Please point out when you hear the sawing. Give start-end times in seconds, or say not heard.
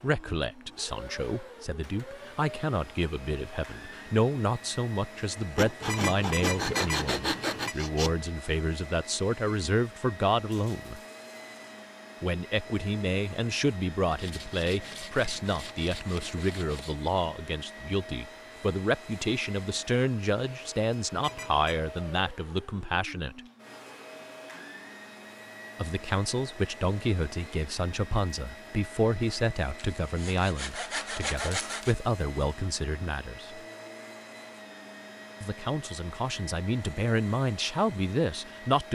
5.5-8.2, 14.1-16.9, 29.8-31.9.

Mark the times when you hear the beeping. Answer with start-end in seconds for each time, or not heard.
5.8-7.8, 21.1-21.7.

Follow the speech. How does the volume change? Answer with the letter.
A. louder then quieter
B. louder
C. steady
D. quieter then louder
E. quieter
C.